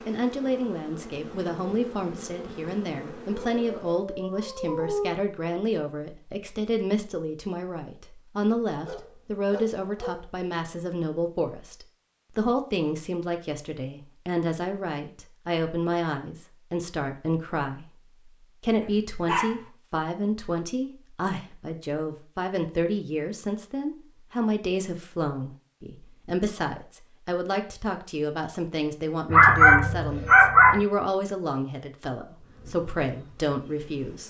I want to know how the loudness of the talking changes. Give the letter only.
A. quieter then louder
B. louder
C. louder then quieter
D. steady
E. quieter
D.